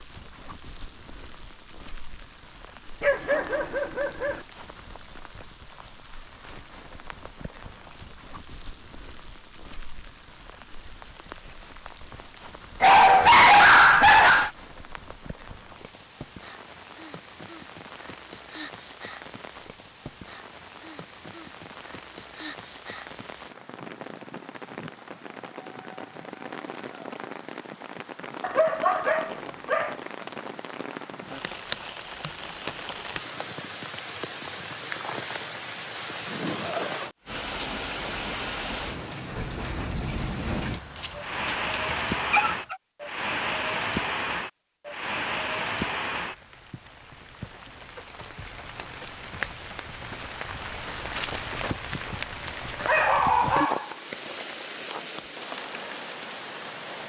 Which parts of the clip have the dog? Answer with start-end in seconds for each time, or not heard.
3.0-4.4, 12.8-14.5, 28.4-29.9, 40.7-42.8, 52.8-53.9.